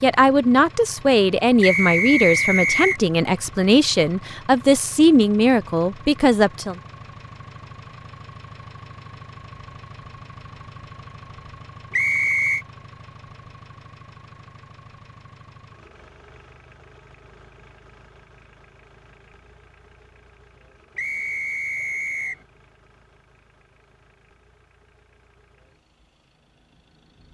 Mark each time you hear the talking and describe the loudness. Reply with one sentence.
The talking can be heard from 0.0 to 6.8 s, at a steady volume.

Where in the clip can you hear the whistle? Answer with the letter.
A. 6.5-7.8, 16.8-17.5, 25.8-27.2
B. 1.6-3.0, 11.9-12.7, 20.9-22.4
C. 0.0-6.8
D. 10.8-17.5
B.